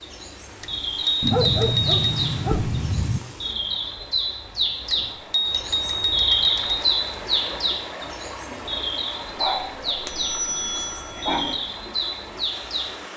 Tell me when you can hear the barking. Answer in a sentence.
You can hear the barking from 1.2 to 3.2 s and from 9.3 to 11.6 s.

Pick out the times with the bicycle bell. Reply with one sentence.
You can hear the bicycle bell from 0.6 to 2.0 s, from 4.9 to 6.9 s and from 10.1 to 11.6 s.